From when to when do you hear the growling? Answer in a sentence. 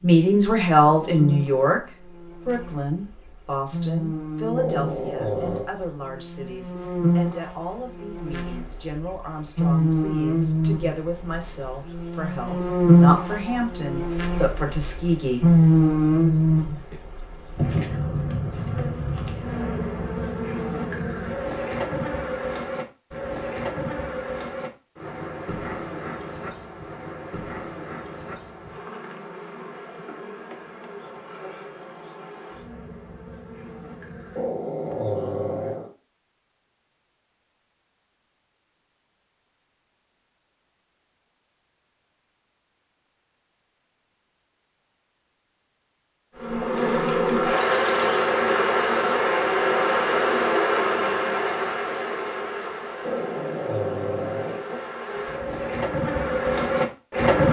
The growling can be heard from 4.5 to 5.7 s, from 34.4 to 35.9 s and from 53.0 to 54.9 s.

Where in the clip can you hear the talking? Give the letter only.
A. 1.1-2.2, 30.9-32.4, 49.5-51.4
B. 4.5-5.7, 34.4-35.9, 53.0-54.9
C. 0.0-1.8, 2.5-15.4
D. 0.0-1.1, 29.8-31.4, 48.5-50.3
C.